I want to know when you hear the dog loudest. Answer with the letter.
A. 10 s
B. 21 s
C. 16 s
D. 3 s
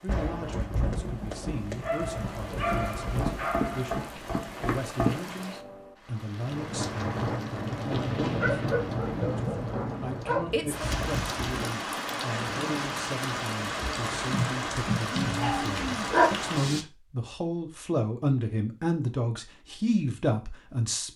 C.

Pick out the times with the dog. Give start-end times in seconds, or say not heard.
1.8-4.0, 8.3-10.7, 14.3-16.3.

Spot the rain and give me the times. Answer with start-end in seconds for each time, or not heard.
0.0-16.9.